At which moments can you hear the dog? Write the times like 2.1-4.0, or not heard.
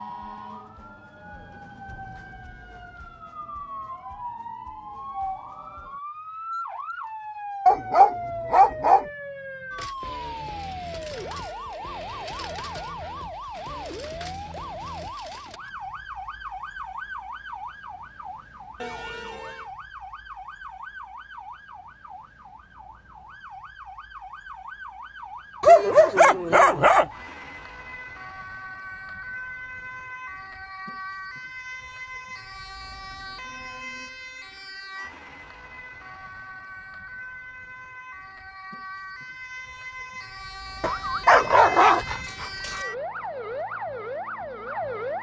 7.7-9.1, 25.6-27.1, 40.8-42.8.